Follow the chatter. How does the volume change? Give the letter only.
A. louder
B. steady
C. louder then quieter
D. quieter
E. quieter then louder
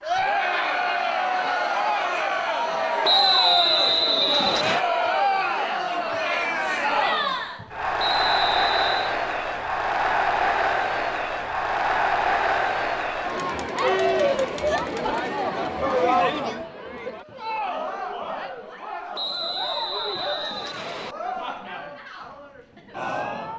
D.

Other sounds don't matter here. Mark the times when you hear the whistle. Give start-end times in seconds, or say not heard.
3.0-4.8, 8.0-9.2, 19.1-21.1.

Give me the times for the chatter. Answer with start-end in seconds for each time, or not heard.
0.0-23.5.